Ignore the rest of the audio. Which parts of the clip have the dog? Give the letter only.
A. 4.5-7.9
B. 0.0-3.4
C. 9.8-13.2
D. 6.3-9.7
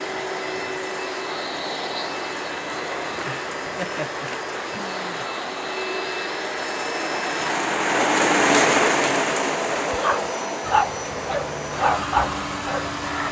C.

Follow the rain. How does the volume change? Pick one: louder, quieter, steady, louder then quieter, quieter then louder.
louder then quieter.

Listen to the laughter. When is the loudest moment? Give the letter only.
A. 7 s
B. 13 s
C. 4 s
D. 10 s
C.